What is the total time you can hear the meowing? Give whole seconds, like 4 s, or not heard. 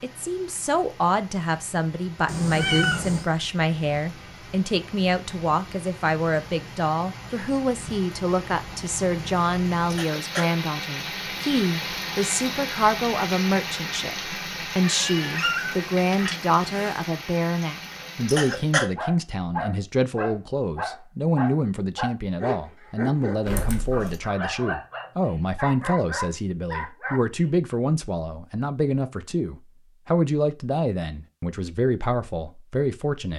4 s.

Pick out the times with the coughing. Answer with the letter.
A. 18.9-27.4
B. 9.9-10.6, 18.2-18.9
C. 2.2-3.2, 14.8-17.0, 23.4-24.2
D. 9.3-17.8
B.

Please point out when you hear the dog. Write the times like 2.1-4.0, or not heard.
18.9-27.4.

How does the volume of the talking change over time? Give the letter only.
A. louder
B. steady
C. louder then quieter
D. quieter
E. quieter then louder
B.